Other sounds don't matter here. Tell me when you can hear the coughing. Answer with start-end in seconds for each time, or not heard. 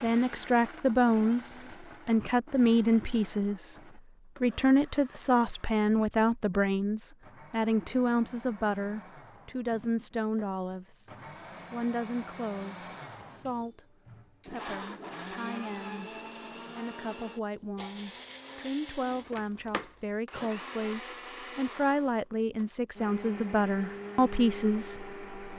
not heard.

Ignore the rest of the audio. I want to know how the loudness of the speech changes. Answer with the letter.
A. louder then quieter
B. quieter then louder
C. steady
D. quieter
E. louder
B.